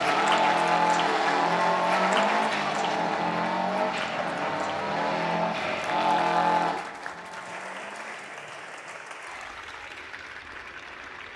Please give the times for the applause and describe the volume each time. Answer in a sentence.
The applause can be heard from 0.0 to 11.3 s, getting quieter.